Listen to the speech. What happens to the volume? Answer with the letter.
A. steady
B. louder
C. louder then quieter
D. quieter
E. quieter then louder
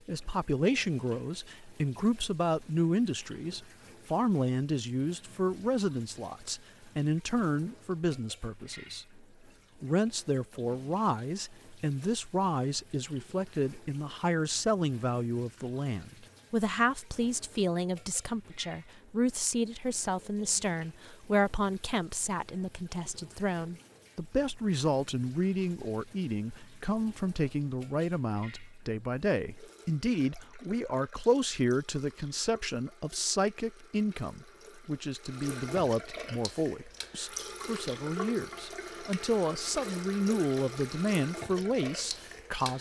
A.